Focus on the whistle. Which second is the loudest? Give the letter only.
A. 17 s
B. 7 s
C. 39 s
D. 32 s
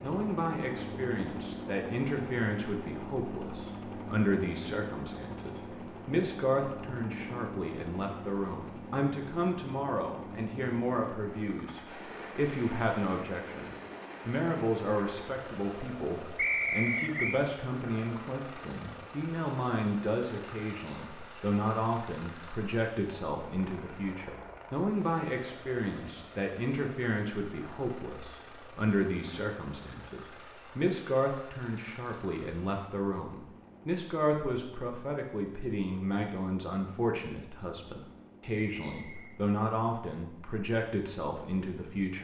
A.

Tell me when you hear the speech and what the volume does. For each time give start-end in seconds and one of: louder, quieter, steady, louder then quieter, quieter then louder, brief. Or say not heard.
0.0-42.1 steady.